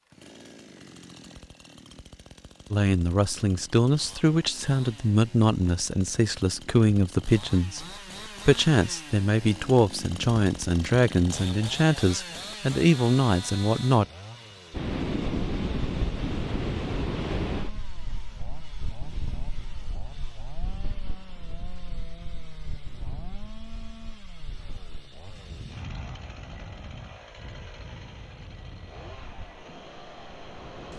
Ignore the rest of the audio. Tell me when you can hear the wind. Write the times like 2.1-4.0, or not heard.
14.7-30.9.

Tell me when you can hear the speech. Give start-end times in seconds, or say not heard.
2.7-7.8, 8.4-14.1.